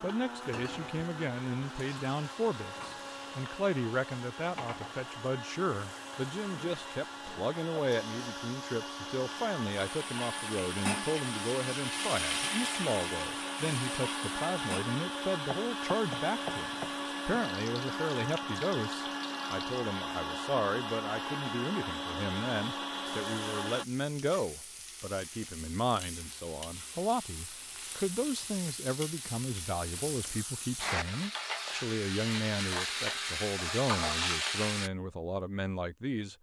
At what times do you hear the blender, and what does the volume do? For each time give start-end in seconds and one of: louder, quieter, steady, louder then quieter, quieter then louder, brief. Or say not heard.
0.0-23.9 louder.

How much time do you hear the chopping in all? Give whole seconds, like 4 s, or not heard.
2 s.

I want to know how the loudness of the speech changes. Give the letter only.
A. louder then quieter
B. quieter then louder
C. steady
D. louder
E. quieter
C.